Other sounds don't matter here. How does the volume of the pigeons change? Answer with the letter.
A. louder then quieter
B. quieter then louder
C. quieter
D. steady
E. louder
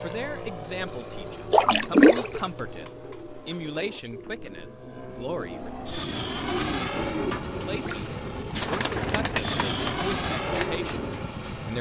E.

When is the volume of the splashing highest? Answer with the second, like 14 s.
2 s.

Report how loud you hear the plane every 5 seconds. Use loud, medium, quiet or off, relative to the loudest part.
medium, loud, loud.